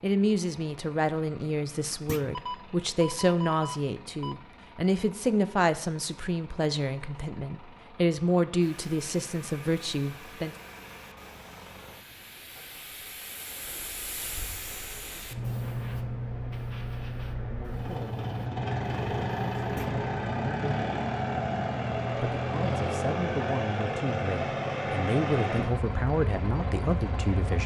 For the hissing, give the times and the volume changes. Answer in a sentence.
You can hear the hissing from 8.6 to 20.1 s, getting louder.